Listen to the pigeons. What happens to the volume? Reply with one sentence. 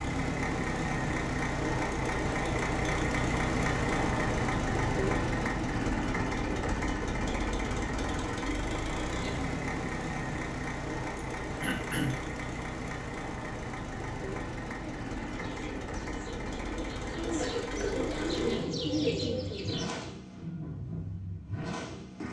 The loudness of the pigeons goes up.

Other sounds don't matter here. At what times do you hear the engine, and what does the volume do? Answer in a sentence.
The engine can be heard from 0.0 to 22.2 s, getting quieter.